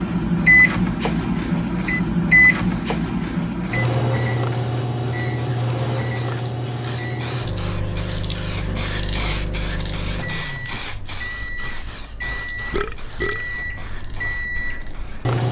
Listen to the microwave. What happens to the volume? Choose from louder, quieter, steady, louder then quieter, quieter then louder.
quieter.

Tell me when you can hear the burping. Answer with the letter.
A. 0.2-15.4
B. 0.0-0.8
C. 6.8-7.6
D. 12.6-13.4
D.